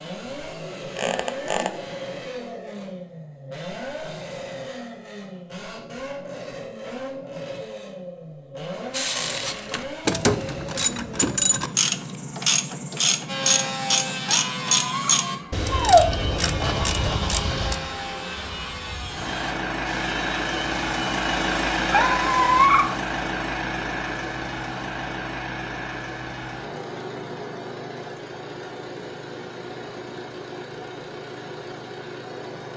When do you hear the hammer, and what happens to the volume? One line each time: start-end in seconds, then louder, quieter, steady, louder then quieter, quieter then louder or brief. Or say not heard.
not heard.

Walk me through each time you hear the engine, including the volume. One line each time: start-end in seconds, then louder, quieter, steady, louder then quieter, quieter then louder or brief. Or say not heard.
0.0-32.7 louder then quieter.